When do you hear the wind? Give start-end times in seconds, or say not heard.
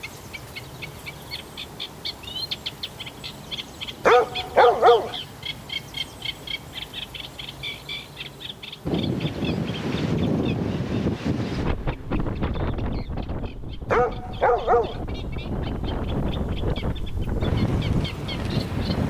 8.8-19.0.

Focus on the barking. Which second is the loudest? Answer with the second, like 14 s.
5 s.